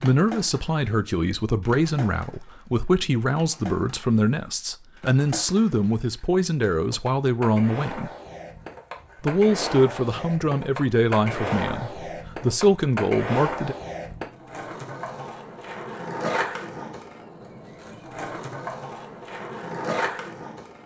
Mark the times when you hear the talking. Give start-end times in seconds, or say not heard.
0.0-8.1, 9.2-13.8.